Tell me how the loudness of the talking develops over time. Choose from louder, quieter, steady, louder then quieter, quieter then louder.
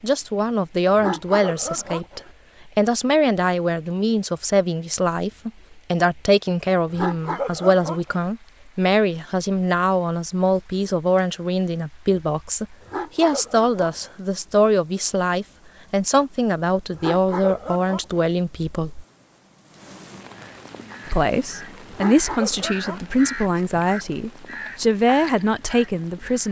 steady.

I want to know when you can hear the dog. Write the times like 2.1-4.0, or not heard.
0.9-2.3, 6.8-8.2, 12.8-14.2, 16.9-18.2, 21.9-23.1.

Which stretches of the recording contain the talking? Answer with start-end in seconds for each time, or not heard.
0.0-19.1, 21.1-26.4.